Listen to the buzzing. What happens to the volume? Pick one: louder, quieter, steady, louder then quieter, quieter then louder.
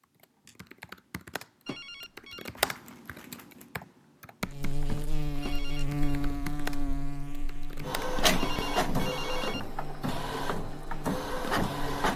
quieter.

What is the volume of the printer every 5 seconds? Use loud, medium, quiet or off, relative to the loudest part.
off, loud, loud.